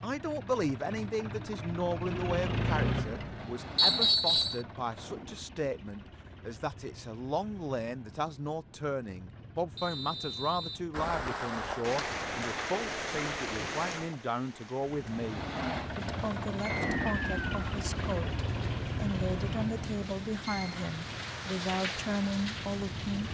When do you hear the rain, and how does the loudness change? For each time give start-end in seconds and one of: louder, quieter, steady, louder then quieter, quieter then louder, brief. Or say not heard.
10.9-23.2 quieter then louder.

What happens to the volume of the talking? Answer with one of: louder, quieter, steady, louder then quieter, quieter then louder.
steady.